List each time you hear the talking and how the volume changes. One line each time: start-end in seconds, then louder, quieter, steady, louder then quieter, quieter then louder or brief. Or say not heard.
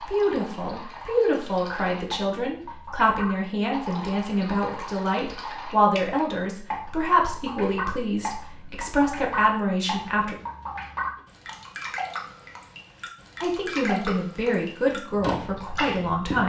0.0-10.3 steady
13.4-16.4 brief.